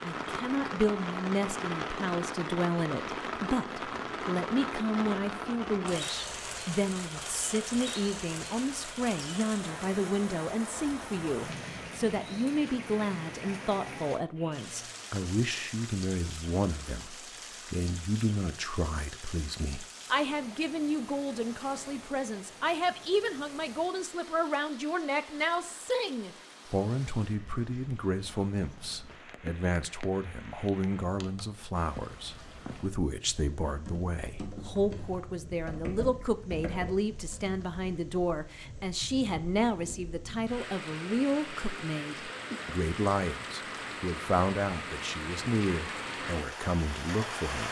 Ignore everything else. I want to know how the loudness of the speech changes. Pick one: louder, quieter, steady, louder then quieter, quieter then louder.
steady.